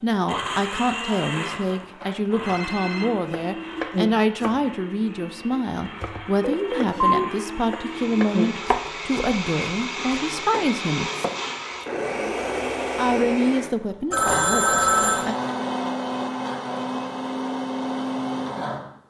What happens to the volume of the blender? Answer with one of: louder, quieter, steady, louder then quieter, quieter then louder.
quieter then louder.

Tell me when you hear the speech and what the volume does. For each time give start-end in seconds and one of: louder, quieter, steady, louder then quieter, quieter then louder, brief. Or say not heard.
0.0-11.1 steady
12.9-15.3 brief.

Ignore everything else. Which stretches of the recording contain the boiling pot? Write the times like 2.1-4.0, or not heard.
not heard.